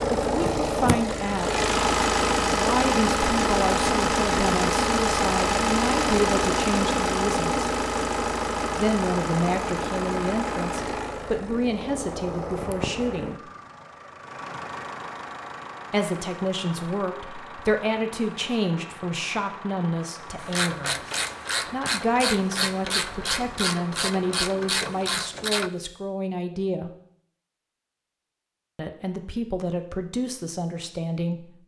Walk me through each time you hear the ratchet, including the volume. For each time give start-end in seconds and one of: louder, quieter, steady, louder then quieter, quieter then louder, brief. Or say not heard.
20.4-25.7 steady.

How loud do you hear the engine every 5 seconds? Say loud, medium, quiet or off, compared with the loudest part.
loud, loud, medium, quiet, quiet, off, off.